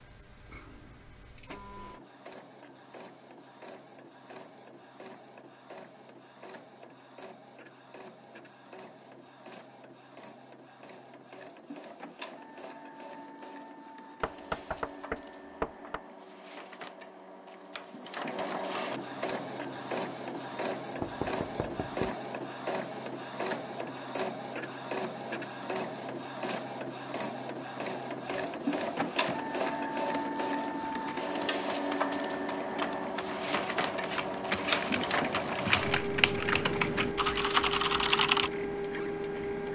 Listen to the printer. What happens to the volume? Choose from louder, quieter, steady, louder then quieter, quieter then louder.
louder.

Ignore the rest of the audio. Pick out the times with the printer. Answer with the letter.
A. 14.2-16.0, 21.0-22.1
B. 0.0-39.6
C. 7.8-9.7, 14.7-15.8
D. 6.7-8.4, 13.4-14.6
B.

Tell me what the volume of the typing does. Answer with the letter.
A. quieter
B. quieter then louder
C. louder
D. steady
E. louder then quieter
C.